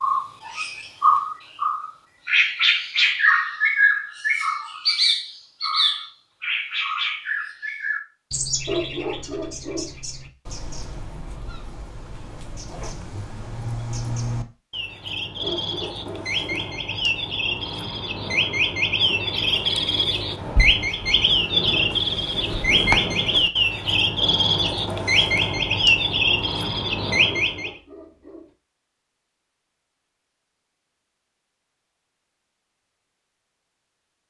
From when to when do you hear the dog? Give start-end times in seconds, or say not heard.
8.7-9.9, 15.4-16.7, 27.4-28.6.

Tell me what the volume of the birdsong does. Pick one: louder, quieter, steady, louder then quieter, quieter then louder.
quieter then louder.